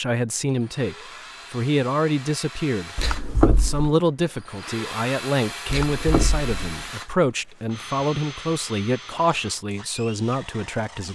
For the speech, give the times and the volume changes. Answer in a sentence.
The speech can be heard from 0.0 to 11.1 s, at a steady volume.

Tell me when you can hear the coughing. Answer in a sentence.
The coughing can be heard from 3.0 to 4.0 s and from 5.7 to 6.9 s.